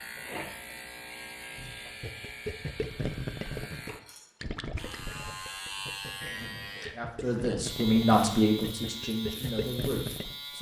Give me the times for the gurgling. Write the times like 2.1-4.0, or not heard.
2.0-10.3.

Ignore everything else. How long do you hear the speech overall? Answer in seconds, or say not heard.
4 s.